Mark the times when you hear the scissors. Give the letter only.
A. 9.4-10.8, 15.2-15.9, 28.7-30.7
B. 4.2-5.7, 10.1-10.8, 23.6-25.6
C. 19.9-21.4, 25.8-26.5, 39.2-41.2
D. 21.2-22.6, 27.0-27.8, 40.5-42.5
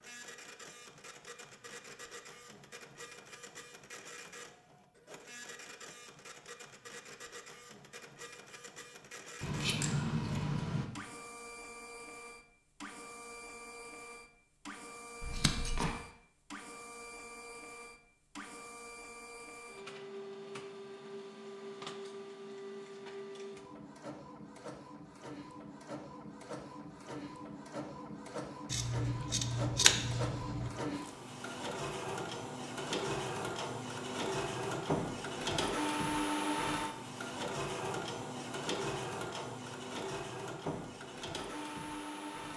A.